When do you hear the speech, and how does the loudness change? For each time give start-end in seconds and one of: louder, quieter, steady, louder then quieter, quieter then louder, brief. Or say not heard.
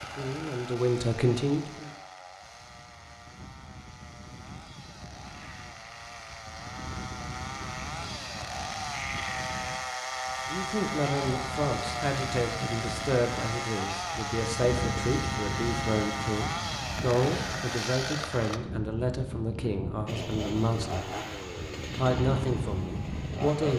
0.0-1.9 brief
10.4-23.7 steady.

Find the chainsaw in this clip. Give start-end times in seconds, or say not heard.
0.0-18.6, 20.1-23.7.